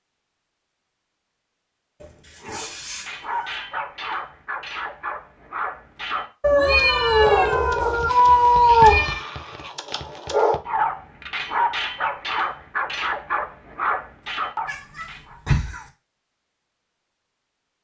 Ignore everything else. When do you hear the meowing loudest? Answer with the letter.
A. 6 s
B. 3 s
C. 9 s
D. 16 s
C.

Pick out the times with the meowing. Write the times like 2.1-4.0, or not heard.
2.0-3.6, 6.4-9.2, 14.7-15.8.